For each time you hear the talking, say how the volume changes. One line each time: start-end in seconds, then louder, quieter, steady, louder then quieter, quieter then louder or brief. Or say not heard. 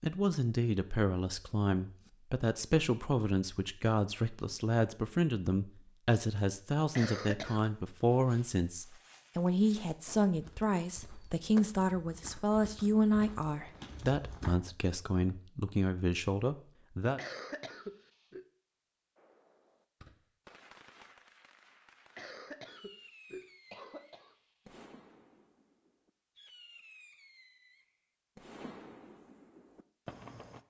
0.0-17.2 steady.